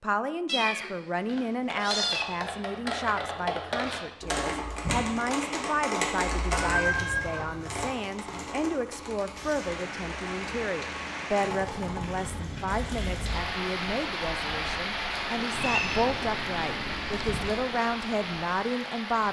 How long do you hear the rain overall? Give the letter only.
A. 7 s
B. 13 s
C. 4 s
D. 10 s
D.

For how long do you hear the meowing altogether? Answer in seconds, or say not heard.
5 s.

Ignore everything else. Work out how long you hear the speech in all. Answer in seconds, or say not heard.
19 s.